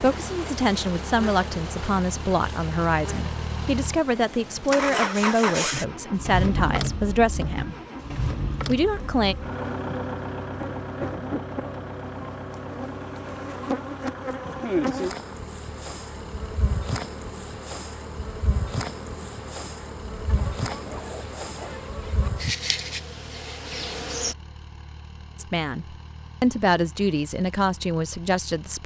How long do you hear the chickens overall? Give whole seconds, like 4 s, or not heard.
2 s.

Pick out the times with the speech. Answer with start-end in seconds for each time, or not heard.
0.0-7.8, 8.7-9.3, 25.4-28.8.